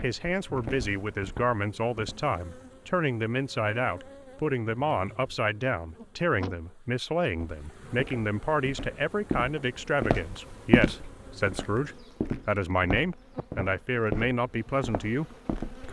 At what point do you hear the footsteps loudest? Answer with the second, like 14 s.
11 s.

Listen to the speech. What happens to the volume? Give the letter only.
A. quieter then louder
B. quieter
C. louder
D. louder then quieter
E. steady
E.